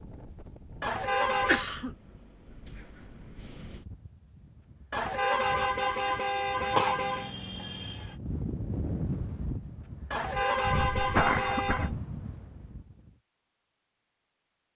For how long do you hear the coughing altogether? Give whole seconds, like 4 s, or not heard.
3 s.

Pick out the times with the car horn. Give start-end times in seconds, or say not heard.
0.8-1.6, 4.9-7.3, 10.1-11.9.